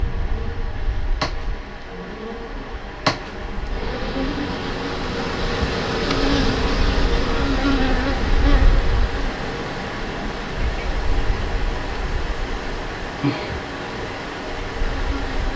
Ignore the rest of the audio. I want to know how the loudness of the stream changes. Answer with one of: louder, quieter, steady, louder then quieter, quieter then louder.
louder.